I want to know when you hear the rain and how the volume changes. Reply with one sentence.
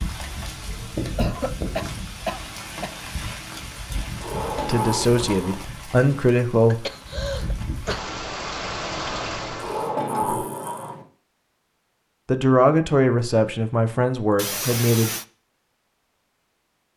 You can hear the rain from 0.0 to 9.9 s, getting quieter then louder.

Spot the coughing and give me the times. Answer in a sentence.
You can hear the coughing from 1.1 to 3.0 s, from 6.7 to 8.1 s and from 14.3 to 15.2 s.